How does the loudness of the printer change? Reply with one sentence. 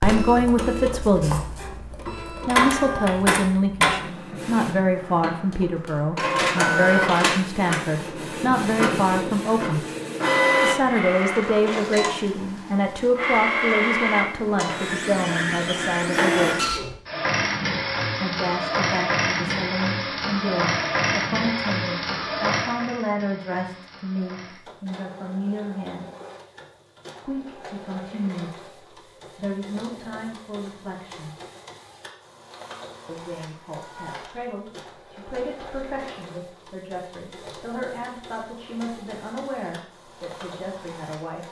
The volume of the printer goes down.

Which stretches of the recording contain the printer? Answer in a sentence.
The printer can be heard from 0.0 to 41.4 s.